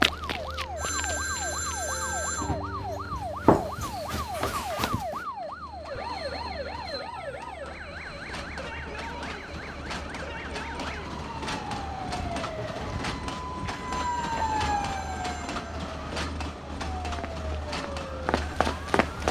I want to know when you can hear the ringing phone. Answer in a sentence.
The ringing phone can be heard from 0.8 to 2.5 s and from 13.8 to 15.7 s.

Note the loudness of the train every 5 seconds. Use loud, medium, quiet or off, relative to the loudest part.
quiet, medium, loud, loud.